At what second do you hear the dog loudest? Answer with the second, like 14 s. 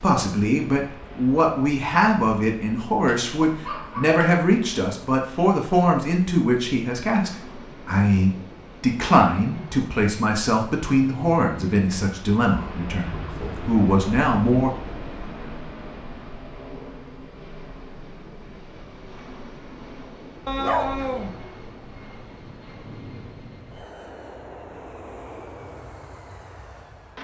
21 s.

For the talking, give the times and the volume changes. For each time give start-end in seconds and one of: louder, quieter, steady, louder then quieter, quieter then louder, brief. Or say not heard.
0.0-14.7 steady.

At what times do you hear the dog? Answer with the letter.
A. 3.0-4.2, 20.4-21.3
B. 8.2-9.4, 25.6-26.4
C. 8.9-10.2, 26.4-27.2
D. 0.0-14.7
A.